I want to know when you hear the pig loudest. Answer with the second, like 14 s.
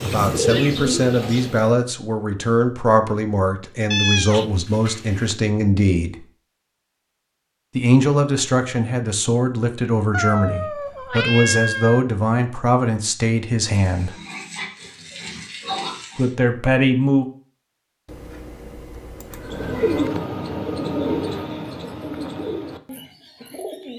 16 s.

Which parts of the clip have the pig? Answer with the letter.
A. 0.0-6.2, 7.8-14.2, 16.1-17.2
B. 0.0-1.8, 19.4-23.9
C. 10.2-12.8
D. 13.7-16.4
D.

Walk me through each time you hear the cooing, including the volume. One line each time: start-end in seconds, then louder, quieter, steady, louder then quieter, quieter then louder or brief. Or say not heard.
0.0-1.8 brief
19.4-23.9 quieter.